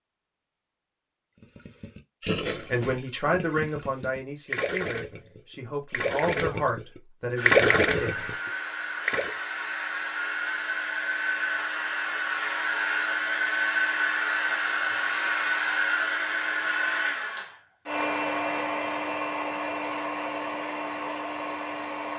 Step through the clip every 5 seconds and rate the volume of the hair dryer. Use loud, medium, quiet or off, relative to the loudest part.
off, medium, loud, loud, medium.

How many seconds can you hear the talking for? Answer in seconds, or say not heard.
6 s.